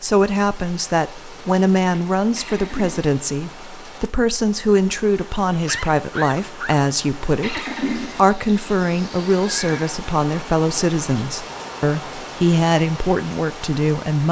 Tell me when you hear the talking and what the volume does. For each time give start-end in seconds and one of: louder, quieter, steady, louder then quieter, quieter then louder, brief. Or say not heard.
0.0-14.2 steady.